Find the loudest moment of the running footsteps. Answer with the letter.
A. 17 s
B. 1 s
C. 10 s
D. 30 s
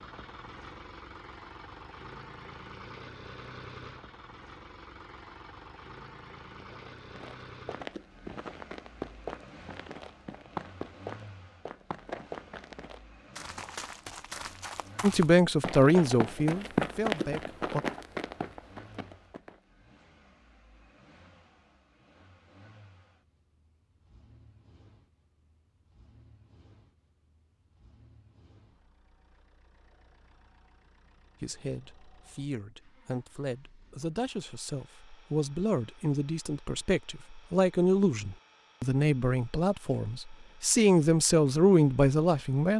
A.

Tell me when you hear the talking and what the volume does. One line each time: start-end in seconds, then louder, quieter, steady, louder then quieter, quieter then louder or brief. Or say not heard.
15.0-17.9 brief
31.4-42.7 louder.